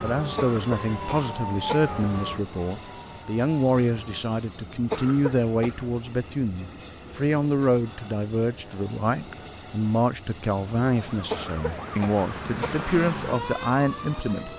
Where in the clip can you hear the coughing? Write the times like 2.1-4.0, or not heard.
0.3-2.0, 4.9-5.8, 11.3-12.8.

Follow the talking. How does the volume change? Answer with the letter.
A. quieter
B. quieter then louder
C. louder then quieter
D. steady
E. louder
D.